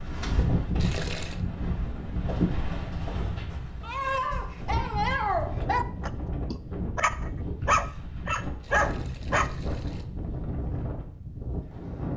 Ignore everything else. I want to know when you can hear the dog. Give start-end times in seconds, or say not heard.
3.8-9.5.